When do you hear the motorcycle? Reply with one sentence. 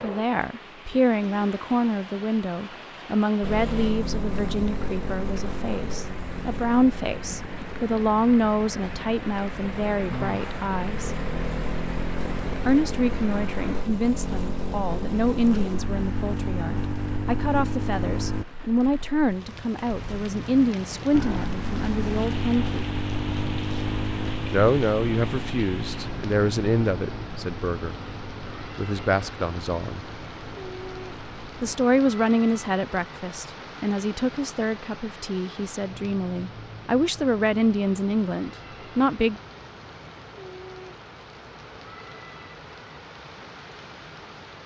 The motorcycle can be heard from 3.4 to 18.4 s and from 21.1 to 31.8 s.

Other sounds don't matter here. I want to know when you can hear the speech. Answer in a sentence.
You can hear the speech from 0.0 to 11.1 s, from 12.7 to 22.9 s, from 24.5 to 27.9 s, from 28.8 to 30.1 s and from 31.6 to 39.4 s.